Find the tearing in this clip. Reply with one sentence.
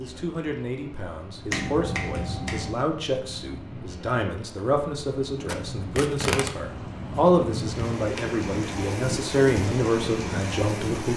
The tearing can be heard from 5.5 to 6.5 s.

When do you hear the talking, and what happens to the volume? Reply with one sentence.
The talking can be heard from 0.0 to 11.1 s, getting louder.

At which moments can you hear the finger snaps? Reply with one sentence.
The finger snaps can be heard from 1.5 to 2.8 s.